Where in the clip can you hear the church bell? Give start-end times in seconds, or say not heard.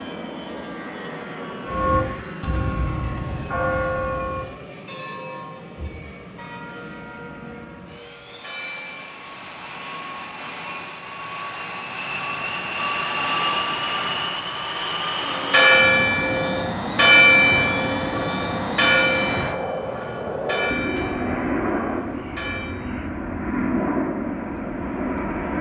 1.6-9.2, 15.2-22.8.